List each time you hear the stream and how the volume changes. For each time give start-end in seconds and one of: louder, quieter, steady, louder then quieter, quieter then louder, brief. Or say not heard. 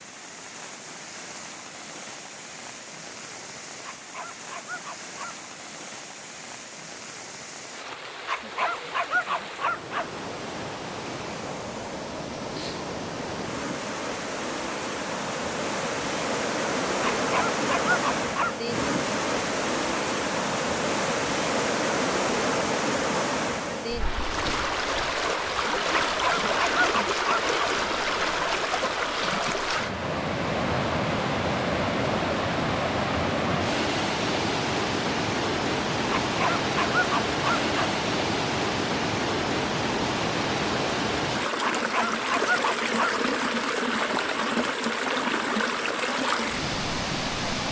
0.0-47.6 louder.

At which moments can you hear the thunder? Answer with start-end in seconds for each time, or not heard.
not heard.